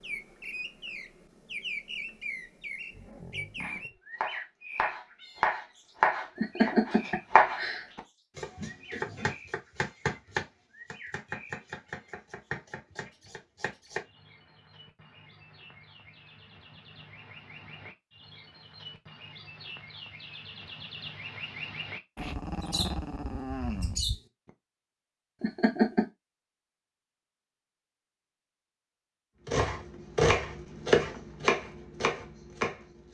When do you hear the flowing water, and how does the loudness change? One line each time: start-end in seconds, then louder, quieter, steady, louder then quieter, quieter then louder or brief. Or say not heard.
not heard.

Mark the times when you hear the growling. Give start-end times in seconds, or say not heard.
2.9-4.0, 22.1-24.2.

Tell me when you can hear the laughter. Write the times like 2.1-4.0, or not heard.
6.3-7.8, 25.4-26.1.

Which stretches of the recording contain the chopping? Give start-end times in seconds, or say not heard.
3.6-14.1, 29.4-33.0.